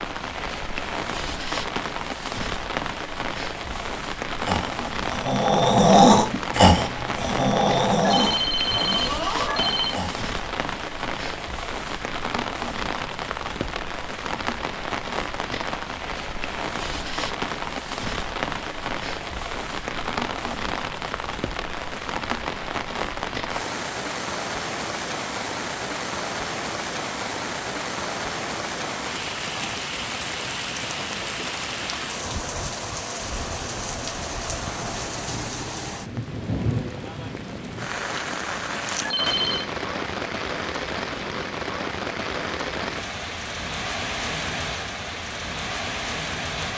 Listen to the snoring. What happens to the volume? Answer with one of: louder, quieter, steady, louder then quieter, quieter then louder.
louder then quieter.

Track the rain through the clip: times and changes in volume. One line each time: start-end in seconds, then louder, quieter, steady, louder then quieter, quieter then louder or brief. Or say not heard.
0.0-46.7 steady.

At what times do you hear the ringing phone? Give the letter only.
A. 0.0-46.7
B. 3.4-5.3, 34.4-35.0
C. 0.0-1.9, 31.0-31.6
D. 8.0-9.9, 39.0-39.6
D.